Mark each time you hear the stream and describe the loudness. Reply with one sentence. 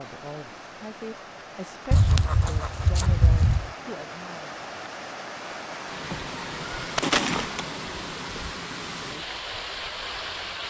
The stream can be heard from 0.0 to 10.6 s, getting louder.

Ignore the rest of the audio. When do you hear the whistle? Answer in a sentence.
You can't hear the whistle here.